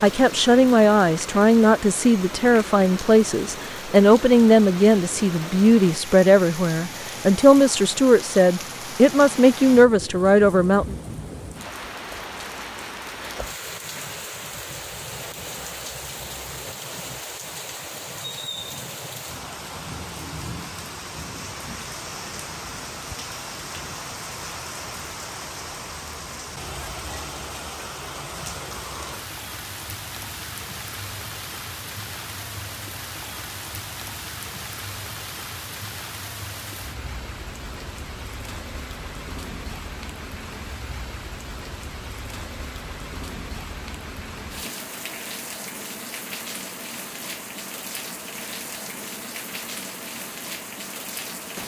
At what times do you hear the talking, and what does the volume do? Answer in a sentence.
The talking can be heard from 0.0 to 10.9 s, at a steady volume.